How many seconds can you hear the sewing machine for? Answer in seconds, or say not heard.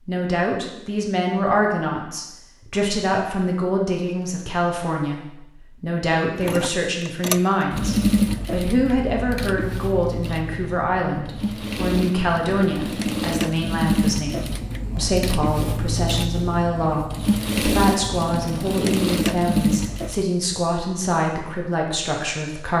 14 s.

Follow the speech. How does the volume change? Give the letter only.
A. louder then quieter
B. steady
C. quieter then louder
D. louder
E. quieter
B.